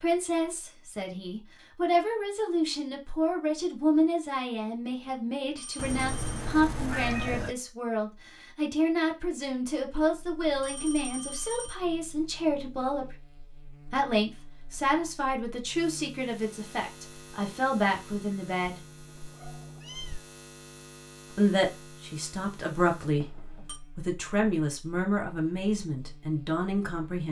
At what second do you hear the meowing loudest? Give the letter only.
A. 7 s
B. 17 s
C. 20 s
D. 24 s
A.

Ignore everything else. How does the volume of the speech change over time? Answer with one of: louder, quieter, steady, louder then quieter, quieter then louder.
steady.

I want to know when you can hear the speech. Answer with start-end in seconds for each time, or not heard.
0.0-13.2, 13.9-18.8, 21.4-27.2.